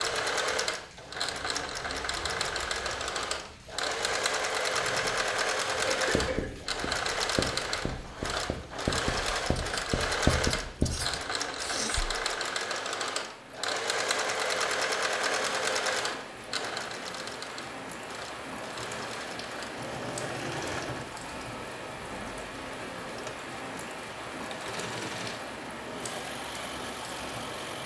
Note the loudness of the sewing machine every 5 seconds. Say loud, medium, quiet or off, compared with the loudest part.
loud, loud, loud, loud, medium, medium.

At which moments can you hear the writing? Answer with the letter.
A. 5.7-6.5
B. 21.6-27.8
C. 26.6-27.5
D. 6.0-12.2
D.